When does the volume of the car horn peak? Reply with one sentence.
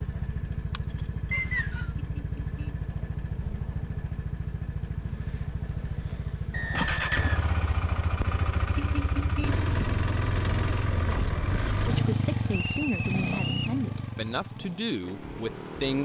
The loudest moment of the car horn is at 9 seconds.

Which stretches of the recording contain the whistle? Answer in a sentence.
The whistle can be heard from 1.3 to 1.9 s, from 6.5 to 8.2 s and from 12.6 to 13.8 s.